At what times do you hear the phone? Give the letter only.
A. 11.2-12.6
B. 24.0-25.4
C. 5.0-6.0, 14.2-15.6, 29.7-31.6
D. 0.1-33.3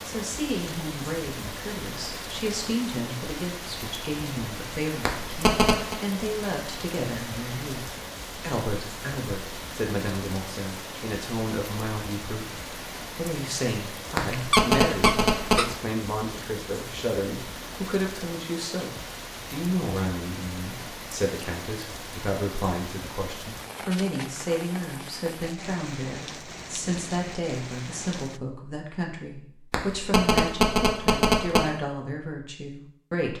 C.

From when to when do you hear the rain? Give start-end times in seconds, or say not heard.
0.0-28.4.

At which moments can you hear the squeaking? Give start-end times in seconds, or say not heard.
14.3-15.8.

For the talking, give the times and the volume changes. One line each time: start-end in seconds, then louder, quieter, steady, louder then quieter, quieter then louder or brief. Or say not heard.
0.1-33.3 steady.